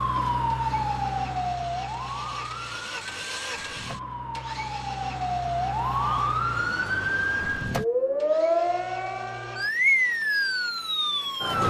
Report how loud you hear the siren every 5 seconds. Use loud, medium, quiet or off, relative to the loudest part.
medium, loud, loud.